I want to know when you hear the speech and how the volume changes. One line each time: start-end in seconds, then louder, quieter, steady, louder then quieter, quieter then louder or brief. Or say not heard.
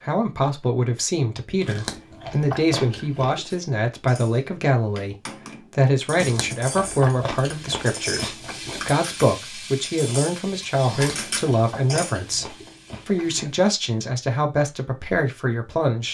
0.0-16.1 steady.